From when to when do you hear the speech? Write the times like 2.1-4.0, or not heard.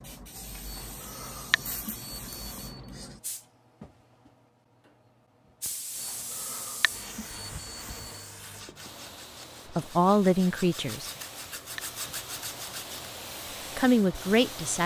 9.7-11.1, 13.8-14.8.